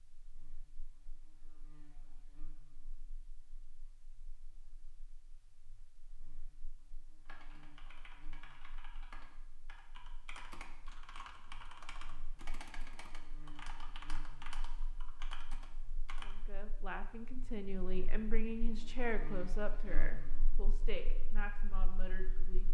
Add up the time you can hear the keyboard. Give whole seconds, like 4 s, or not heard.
9 s.